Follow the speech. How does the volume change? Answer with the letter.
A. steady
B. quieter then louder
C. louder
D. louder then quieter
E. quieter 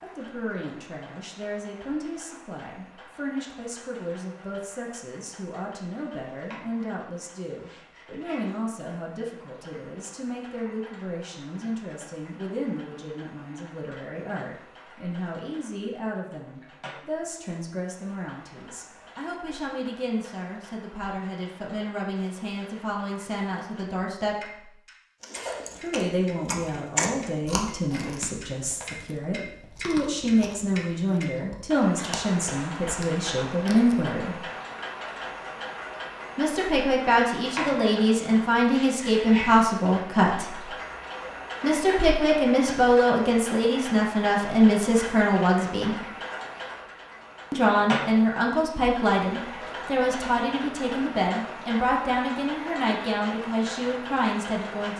C.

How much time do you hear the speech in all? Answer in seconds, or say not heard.
49 s.